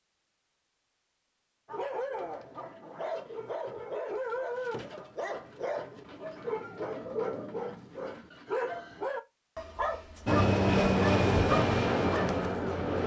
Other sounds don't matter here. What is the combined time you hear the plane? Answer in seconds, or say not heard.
3 s.